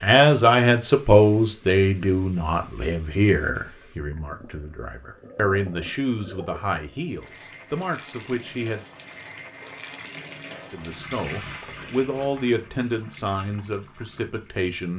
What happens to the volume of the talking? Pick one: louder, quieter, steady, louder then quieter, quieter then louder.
quieter.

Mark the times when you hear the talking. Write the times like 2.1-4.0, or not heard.
0.0-8.8, 10.7-14.9.